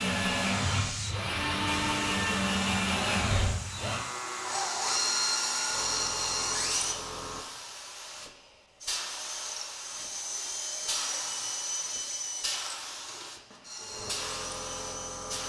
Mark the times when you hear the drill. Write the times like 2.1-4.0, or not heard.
0.0-7.0, 8.8-15.4.